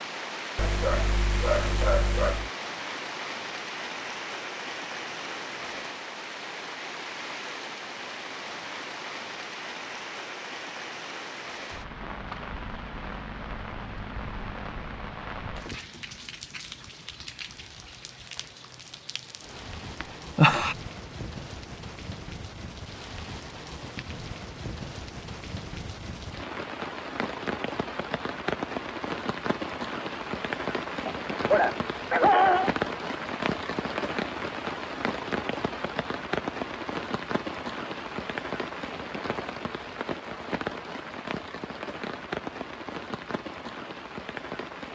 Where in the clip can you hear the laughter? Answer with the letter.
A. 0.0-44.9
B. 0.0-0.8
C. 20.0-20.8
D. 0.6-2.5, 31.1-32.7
C.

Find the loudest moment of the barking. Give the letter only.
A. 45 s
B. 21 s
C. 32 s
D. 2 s
C.